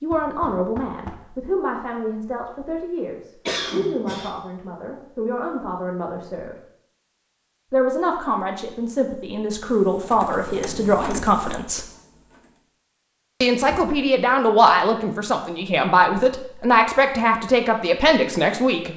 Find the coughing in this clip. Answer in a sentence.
The coughing can be heard from 3.5 to 4.3 s.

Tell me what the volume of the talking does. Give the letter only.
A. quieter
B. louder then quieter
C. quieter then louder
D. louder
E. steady
D.